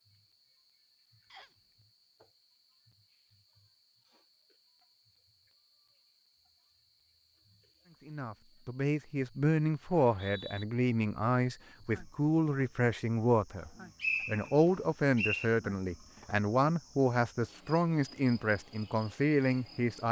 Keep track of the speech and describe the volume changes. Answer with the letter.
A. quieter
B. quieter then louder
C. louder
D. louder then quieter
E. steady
E.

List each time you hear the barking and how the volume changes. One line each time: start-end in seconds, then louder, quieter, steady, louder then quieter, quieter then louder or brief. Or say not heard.
not heard.